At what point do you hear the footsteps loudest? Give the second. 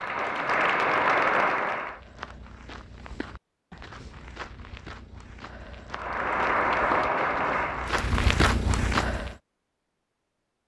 8 s.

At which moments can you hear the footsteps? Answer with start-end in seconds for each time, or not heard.
1.8-9.3.